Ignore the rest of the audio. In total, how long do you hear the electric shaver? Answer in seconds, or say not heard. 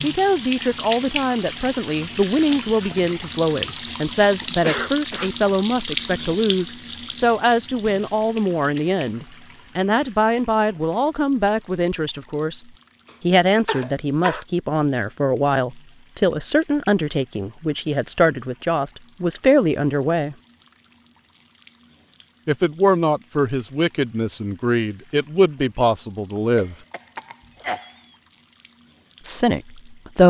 not heard.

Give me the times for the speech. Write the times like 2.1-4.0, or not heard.
0.0-12.6, 13.2-20.4, 22.4-26.8, 29.2-30.2.